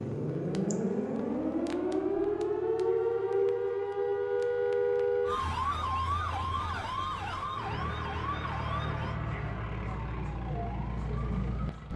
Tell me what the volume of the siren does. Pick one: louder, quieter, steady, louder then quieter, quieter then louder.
quieter.